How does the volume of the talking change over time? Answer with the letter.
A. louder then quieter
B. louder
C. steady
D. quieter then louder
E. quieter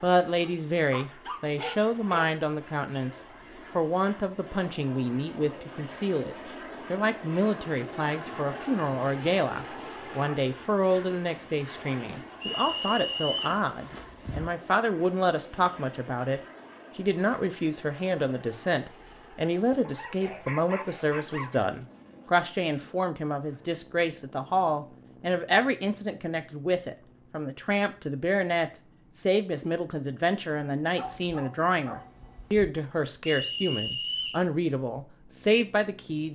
C.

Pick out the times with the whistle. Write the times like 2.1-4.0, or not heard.
12.4-13.6, 33.2-34.5.